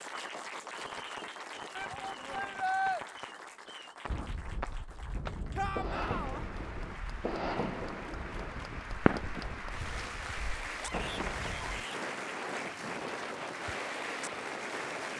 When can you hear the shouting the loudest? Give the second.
3 s.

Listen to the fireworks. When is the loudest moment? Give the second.
9 s.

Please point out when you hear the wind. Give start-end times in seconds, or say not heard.
4.0-15.1.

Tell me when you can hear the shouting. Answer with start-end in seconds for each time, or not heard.
1.8-3.0, 5.5-6.4, 10.8-12.0.